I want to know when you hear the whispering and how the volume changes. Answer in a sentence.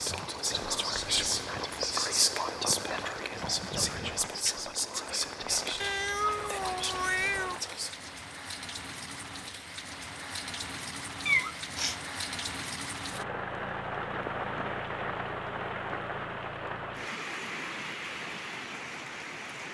The whispering can be heard from 0.0 to 8.2 s, getting quieter.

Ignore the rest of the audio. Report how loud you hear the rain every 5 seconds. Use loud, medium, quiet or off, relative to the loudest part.
medium, medium, loud, loud.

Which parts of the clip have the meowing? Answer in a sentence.
The meowing can be heard from 5.8 to 7.6 s and from 11.2 to 12.0 s.